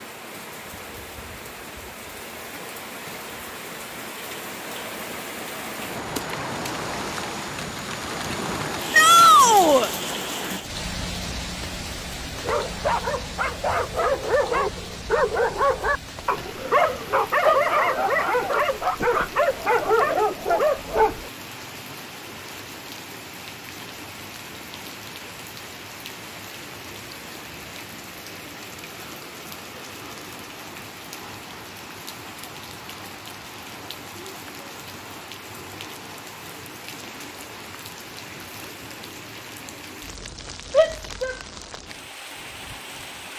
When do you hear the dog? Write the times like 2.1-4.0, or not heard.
12.2-21.3.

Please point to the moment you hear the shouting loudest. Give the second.
9 s.